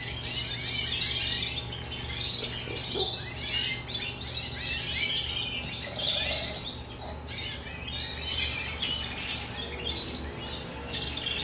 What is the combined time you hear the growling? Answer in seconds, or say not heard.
2 s.